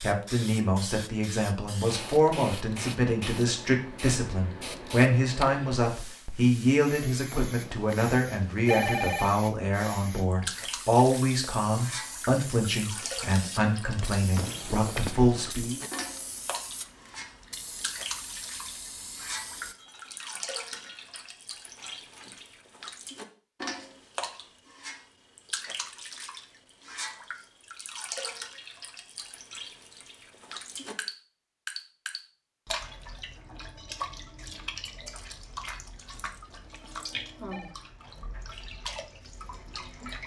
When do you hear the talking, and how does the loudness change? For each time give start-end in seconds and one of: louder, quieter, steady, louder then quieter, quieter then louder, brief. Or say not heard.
0.0-15.8 steady.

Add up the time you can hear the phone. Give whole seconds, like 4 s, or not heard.
5 s.